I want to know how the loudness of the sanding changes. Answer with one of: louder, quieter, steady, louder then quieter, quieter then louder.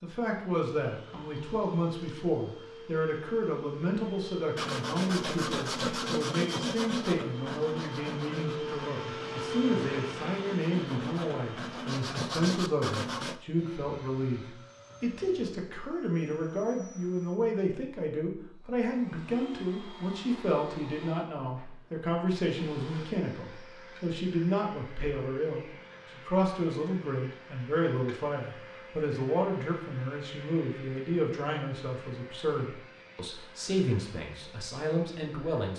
quieter then louder.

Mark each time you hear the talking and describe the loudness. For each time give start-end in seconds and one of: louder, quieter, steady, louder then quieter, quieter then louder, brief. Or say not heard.
0.0-35.7 steady.